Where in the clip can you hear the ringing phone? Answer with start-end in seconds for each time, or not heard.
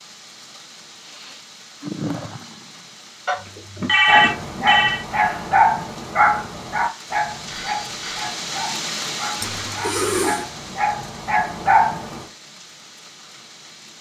3.2-5.0, 7.5-8.3.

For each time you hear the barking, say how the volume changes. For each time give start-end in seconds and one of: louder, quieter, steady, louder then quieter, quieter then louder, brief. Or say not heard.
4.0-12.2 quieter then louder.